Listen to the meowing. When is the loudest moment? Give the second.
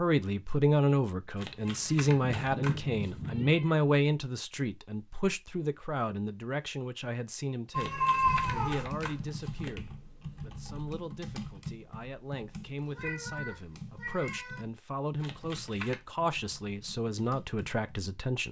8 s.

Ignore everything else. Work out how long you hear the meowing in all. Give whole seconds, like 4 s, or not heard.
5 s.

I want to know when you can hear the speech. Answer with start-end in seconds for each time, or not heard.
0.0-18.4.